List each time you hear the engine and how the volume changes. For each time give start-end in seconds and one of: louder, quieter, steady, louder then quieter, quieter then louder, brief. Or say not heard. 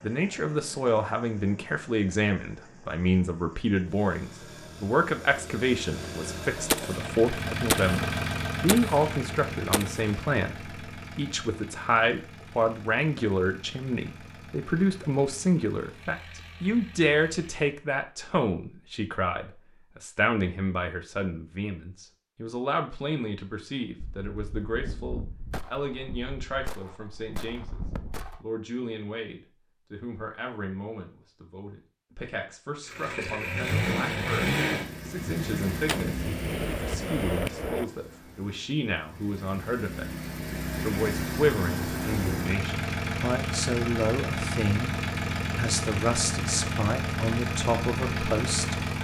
0.0-17.7 louder then quieter
32.9-49.0 quieter then louder.